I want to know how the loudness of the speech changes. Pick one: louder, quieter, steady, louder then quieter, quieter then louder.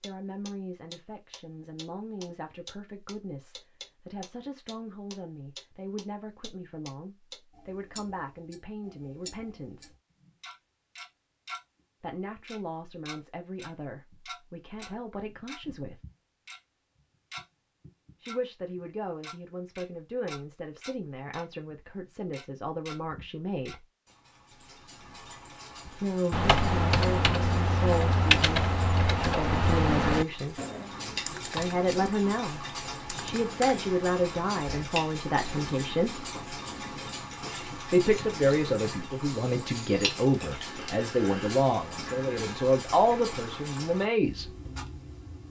louder.